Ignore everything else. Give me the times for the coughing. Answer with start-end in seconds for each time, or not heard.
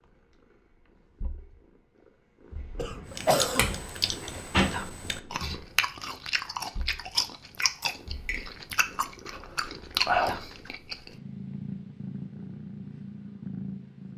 2.8-3.6.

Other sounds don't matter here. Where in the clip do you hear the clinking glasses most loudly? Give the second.
4 s.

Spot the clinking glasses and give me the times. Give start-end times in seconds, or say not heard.
3.5-4.5, 7.5-8.4.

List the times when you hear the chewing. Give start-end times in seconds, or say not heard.
3.1-11.1.